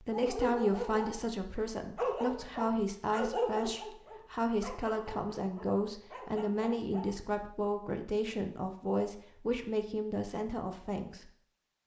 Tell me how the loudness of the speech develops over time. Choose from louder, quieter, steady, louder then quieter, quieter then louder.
steady.